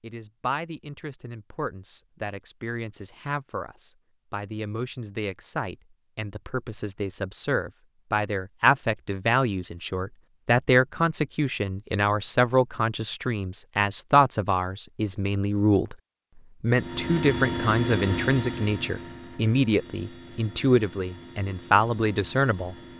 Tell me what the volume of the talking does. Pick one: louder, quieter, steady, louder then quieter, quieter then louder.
louder.